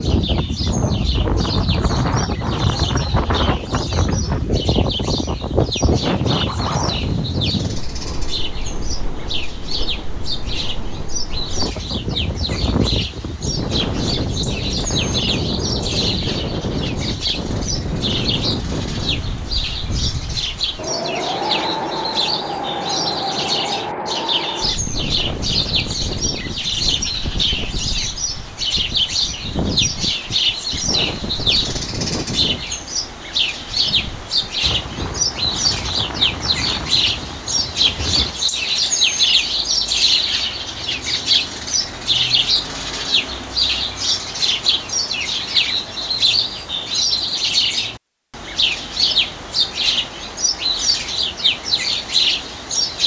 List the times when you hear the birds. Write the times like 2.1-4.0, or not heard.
0.0-53.0.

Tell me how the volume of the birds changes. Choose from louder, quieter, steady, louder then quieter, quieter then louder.
louder.